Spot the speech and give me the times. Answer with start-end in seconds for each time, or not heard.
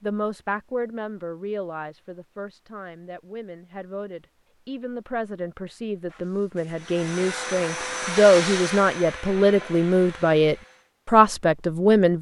0.0-12.1.